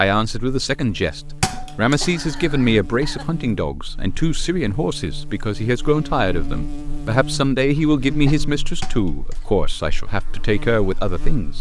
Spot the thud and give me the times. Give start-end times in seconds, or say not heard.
1.4-1.9, 8.8-9.6.